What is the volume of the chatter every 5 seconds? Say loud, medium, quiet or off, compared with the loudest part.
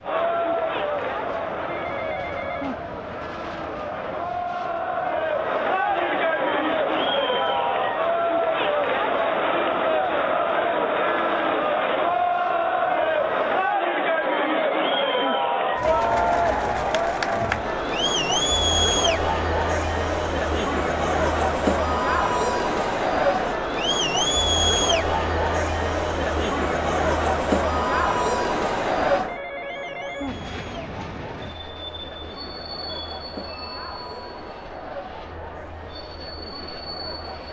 medium, loud, loud, loud, loud, loud, quiet, quiet.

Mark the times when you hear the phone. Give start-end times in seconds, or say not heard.
1.6-2.8, 14.2-15.4, 29.2-30.4.